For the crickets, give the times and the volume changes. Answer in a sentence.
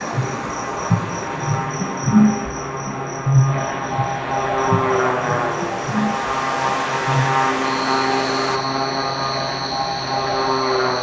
The crickets can be heard from 0.0 to 10.9 s, getting quieter.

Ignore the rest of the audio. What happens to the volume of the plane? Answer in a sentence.
The loudness of the plane goes up.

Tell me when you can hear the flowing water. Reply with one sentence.
You can hear the flowing water from 0.0 to 8.6 s.